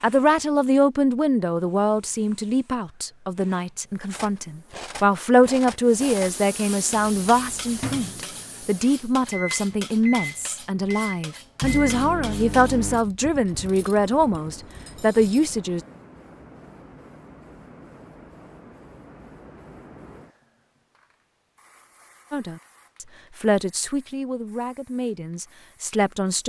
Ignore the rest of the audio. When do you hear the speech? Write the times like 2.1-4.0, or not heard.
0.0-15.8, 22.3-26.4.